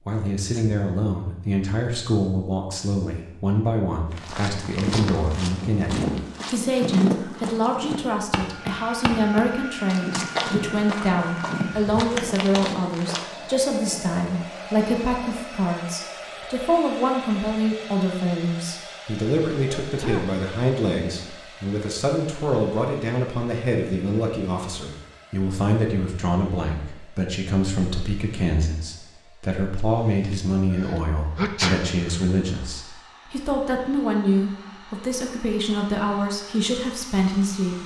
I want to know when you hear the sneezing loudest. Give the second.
32 s.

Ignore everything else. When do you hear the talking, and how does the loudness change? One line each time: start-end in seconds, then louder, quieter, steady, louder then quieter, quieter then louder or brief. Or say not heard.
0.1-37.8 steady.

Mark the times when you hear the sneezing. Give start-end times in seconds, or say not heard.
0.2-0.8, 19.8-20.3, 30.8-32.2.